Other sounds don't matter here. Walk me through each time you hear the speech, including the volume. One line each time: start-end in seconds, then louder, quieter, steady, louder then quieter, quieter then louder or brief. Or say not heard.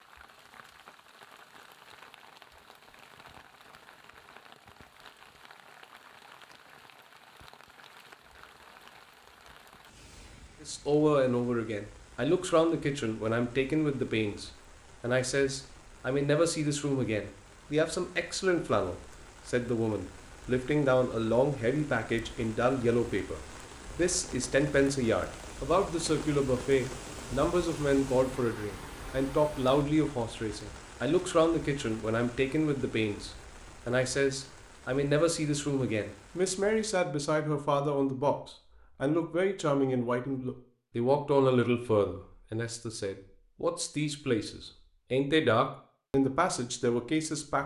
10.6-47.6 steady.